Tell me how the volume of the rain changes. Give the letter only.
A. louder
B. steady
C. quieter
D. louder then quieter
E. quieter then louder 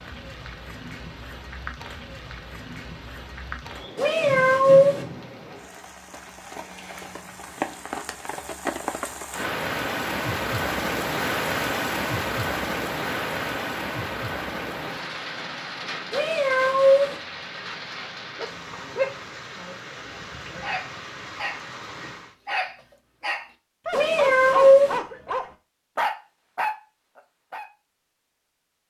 D.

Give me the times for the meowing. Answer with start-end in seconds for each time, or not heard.
4.0-5.0, 16.1-17.1, 23.9-25.0.